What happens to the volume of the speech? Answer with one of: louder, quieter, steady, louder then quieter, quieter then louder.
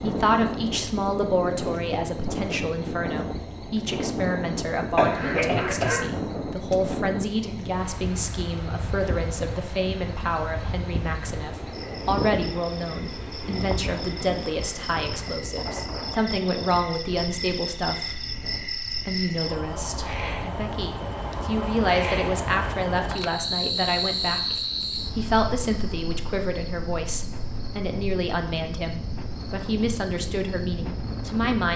steady.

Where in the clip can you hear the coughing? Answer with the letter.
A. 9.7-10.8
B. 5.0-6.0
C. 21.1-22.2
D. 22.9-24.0
B.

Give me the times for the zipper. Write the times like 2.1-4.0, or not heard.
not heard.